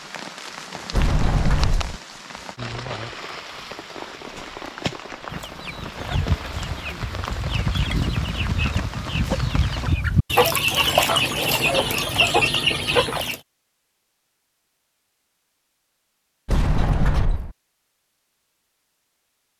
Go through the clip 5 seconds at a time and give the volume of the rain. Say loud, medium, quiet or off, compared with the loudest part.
loud, loud, off, off.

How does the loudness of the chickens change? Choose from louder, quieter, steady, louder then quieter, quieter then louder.
louder.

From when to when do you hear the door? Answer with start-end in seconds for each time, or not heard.
0.9-1.9, 16.4-17.6.